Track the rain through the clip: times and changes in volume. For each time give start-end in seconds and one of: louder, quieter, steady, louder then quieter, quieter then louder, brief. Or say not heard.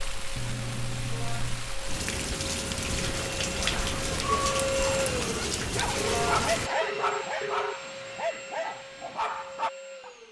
0.0-6.7 louder.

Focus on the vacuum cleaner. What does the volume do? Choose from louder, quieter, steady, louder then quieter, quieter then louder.
louder then quieter.